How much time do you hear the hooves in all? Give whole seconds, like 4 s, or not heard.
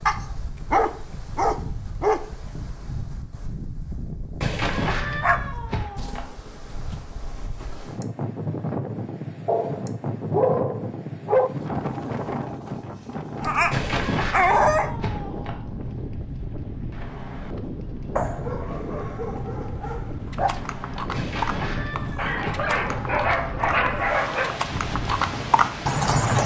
6 s.